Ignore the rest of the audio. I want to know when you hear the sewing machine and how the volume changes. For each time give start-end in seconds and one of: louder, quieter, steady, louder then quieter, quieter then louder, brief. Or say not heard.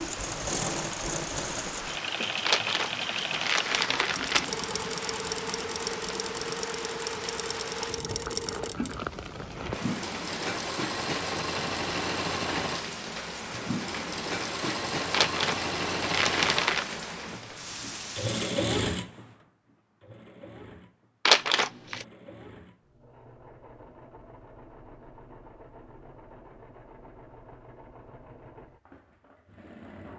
0.0-30.1 quieter.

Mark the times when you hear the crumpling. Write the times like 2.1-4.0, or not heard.
2.5-4.5, 15.1-16.9, 21.2-22.1.